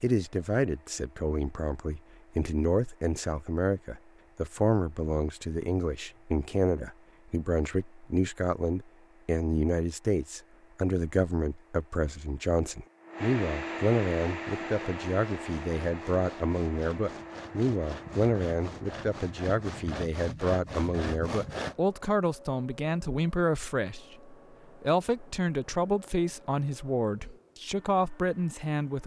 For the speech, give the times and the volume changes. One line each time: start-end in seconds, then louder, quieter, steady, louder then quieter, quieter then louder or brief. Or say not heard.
0.0-29.0 steady.